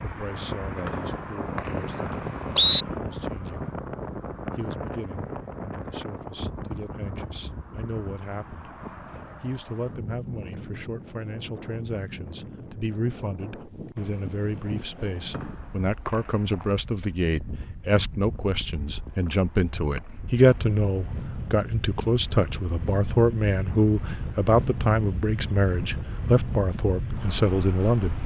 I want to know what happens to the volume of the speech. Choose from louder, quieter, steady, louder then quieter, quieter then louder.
louder.